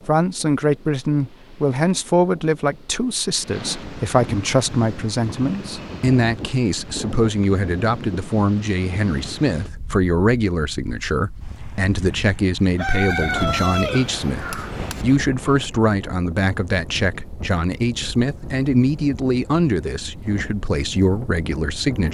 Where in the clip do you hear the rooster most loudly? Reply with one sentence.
The volume of the rooster peaks at 13 seconds.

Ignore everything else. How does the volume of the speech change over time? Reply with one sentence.
The volume of the speech stays about the same.